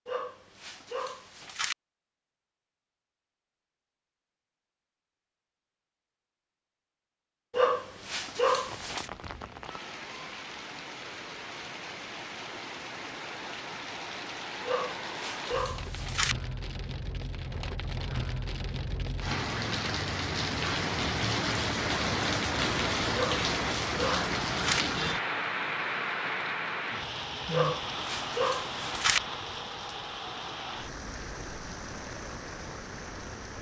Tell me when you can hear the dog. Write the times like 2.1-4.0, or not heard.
0.1-1.8, 7.5-9.1, 14.7-16.4, 23.1-24.9, 27.5-29.2.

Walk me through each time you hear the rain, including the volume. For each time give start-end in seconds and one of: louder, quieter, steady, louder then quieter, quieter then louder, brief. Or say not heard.
8.7-33.5 louder then quieter.